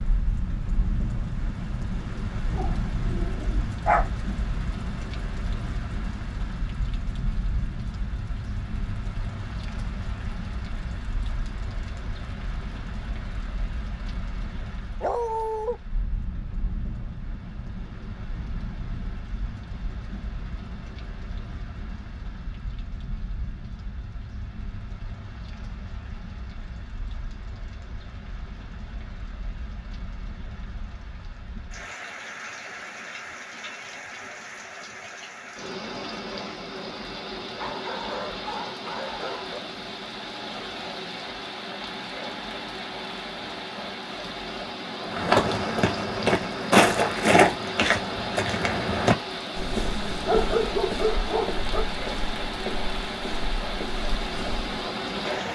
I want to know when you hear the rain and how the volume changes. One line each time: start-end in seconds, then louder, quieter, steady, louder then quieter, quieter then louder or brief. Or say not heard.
0.0-55.5 quieter then louder.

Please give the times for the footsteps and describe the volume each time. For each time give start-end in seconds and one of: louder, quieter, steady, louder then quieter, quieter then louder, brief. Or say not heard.
45.0-54.8 quieter.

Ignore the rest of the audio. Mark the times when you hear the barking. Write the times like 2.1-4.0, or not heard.
2.5-4.0, 15.0-15.8, 37.6-39.6, 50.1-51.9.